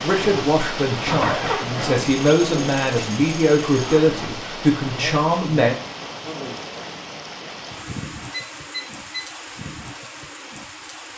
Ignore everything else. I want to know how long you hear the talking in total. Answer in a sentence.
The talking can be heard for 6 seconds in total.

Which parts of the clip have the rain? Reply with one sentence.
The rain can be heard from 0.0 to 11.1 s.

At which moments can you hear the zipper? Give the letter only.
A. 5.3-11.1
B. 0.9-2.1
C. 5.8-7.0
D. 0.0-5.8
B.